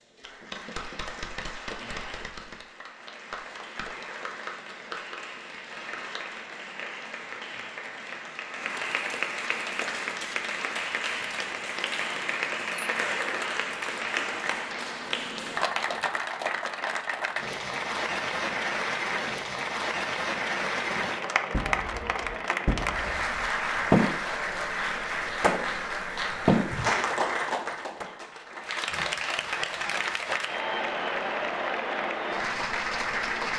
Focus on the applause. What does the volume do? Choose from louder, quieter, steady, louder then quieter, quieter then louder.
louder.